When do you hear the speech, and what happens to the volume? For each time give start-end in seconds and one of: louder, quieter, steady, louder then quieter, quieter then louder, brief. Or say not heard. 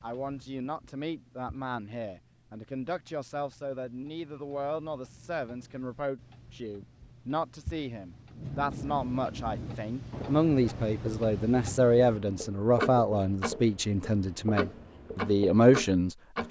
0.0-16.4 louder.